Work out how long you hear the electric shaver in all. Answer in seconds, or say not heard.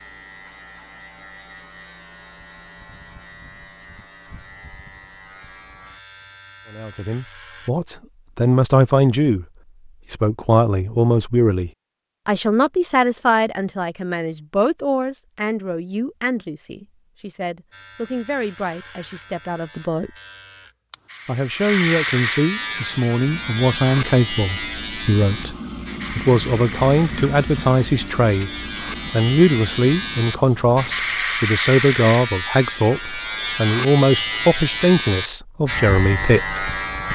27 s.